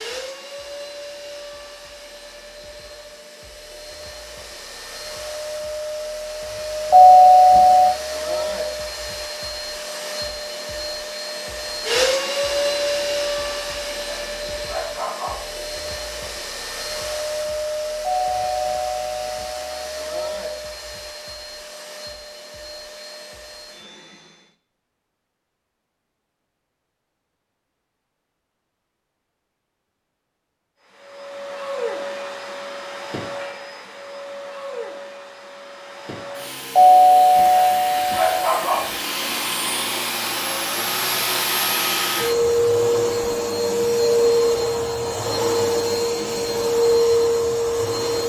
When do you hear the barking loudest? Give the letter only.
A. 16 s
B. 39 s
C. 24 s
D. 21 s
B.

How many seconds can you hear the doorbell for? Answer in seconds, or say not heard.
5 s.